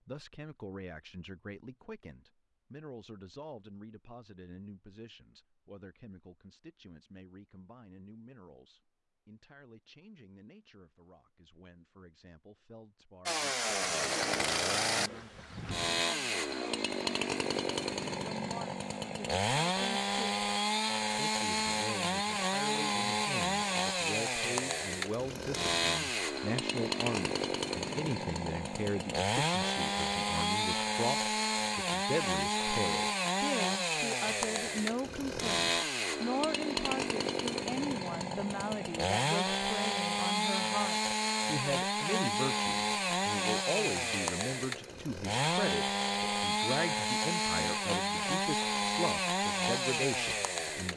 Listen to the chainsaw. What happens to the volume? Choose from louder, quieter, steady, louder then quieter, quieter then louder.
steady.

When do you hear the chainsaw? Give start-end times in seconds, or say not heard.
13.2-50.9.